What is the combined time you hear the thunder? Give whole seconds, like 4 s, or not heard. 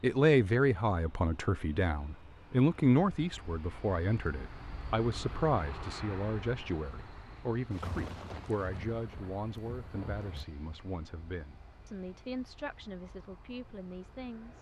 3 s.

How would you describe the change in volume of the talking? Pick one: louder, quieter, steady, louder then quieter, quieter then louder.
quieter.